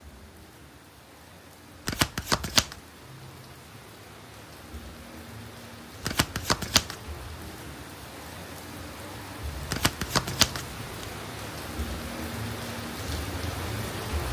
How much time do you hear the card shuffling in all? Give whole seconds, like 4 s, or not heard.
3 s.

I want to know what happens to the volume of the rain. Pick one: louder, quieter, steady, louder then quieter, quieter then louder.
louder.